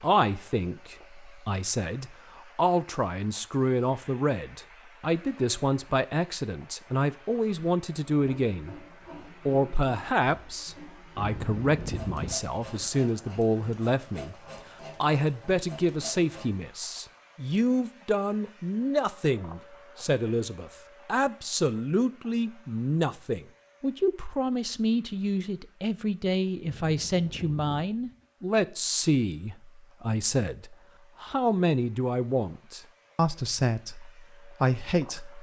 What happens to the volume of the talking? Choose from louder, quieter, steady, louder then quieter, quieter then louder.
steady.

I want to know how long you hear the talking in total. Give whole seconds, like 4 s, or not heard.
34 s.